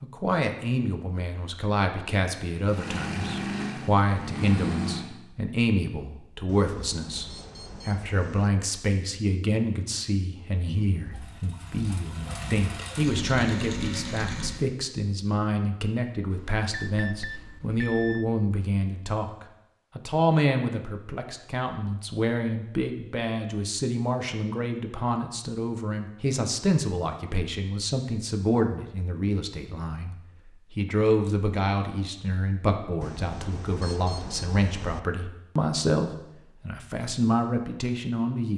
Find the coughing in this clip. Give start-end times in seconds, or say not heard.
not heard.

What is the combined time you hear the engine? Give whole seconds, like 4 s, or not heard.
7 s.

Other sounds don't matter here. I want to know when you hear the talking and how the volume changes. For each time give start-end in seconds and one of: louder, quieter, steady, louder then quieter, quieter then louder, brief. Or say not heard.
0.0-38.5 steady.